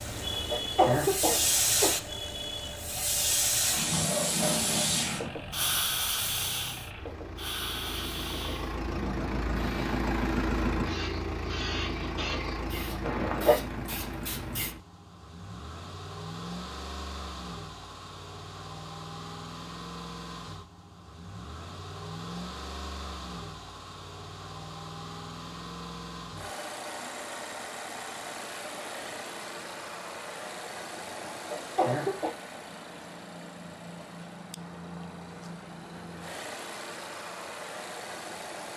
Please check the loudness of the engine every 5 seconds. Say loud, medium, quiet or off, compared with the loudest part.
medium, loud, loud, medium, medium, medium, medium, medium.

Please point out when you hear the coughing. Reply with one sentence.
You can hear the coughing from 0.1 to 1.9 s, from 13.0 to 13.7 s and from 31.1 to 32.4 s.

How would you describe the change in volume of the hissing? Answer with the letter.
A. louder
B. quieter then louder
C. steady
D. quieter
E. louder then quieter
D.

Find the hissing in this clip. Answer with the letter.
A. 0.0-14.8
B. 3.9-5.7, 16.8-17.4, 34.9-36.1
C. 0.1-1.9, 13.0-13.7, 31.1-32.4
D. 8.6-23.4
A.